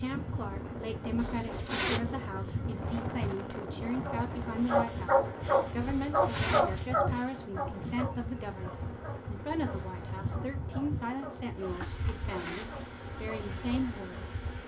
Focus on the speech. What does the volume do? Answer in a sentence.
The loudness of the speech stays about the same.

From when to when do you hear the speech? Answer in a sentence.
The speech can be heard from 0.0 to 14.4 s.